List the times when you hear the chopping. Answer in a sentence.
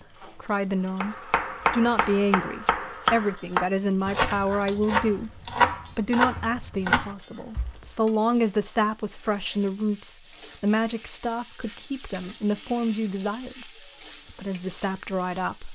You can hear the chopping from 1.0 to 7.9 s.